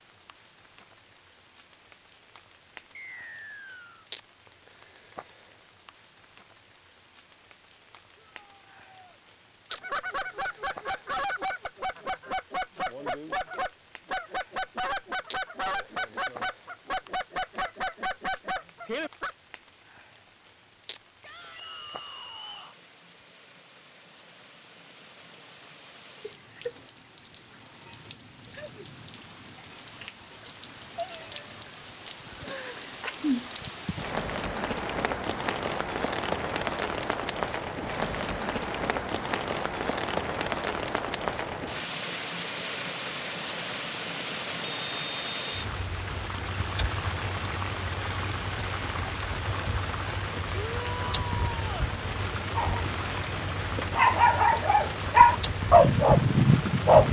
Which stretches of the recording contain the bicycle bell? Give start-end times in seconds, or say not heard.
not heard.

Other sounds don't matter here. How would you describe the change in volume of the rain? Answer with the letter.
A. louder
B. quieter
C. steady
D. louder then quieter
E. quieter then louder
A.